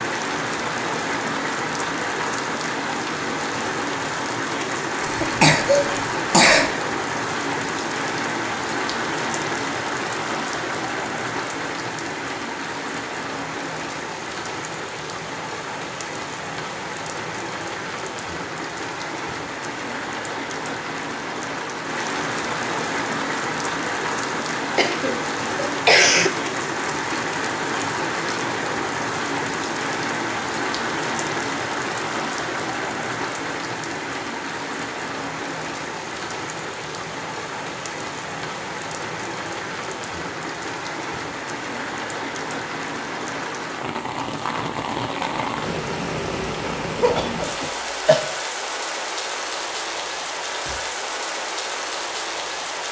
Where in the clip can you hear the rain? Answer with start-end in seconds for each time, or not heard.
0.0-52.8.